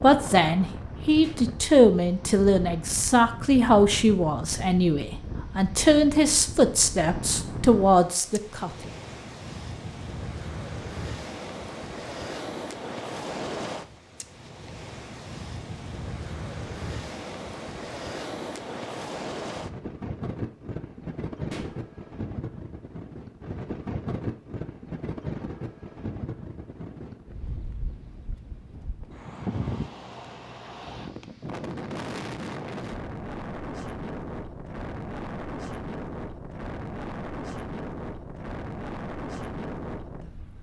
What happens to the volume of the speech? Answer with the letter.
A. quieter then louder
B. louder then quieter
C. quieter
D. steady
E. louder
D.